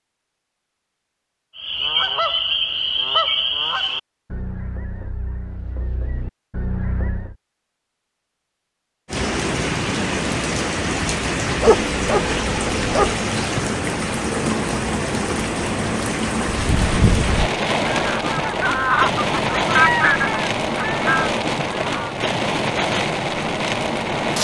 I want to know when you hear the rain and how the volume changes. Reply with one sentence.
The rain can be heard from 9.1 to 24.3 s, at a steady volume.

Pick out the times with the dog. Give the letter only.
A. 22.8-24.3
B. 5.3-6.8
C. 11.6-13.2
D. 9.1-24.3
C.